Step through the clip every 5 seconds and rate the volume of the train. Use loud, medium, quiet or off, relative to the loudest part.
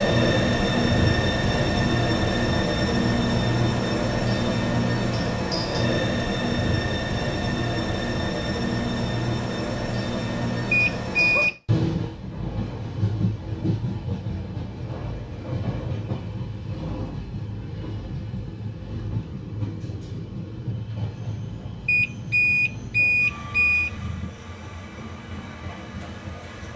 loud, loud, medium, medium, quiet, quiet.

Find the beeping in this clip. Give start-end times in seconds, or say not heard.
10.7-11.6, 21.9-23.9.